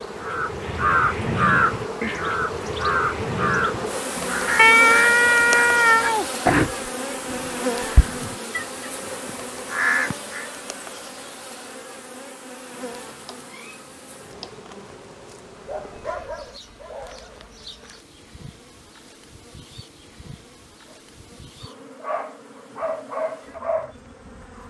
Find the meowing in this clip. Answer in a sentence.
The meowing can be heard from 4.5 to 6.2 s and from 13.0 to 14.6 s.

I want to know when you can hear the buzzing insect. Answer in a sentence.
You can hear the buzzing insect from 0.0 to 24.6 s.